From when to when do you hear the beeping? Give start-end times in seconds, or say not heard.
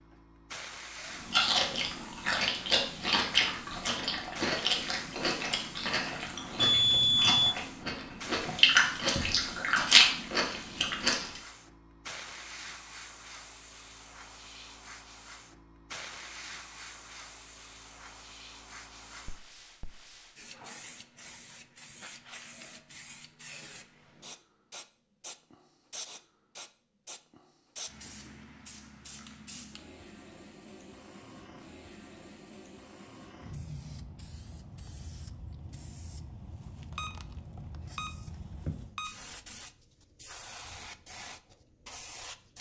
6.6-7.5, 37.0-39.1.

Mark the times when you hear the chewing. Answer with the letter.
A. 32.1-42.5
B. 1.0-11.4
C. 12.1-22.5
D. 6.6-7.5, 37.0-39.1
B.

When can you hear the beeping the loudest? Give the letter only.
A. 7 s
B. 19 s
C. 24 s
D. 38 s
A.